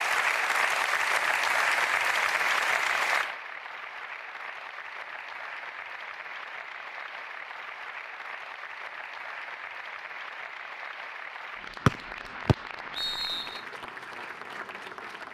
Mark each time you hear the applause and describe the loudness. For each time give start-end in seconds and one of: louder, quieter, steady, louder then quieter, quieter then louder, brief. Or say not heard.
0.0-15.3 quieter.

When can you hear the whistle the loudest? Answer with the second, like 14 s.
12 s.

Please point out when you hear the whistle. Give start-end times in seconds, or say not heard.
11.8-13.6.